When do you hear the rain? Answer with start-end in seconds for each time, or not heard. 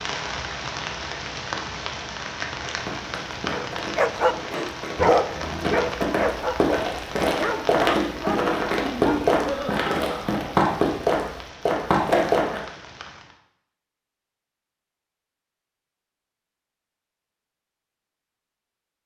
0.0-13.4.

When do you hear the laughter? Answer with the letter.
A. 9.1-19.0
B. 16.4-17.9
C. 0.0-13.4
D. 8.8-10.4
D.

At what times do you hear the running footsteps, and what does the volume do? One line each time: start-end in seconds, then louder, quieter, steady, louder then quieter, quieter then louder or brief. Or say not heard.
2.6-12.6 louder.